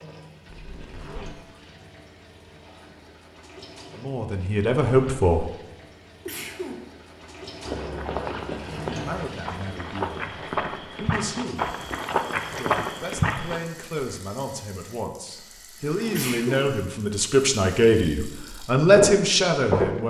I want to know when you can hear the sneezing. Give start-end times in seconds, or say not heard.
6.2-6.8, 16.1-16.6.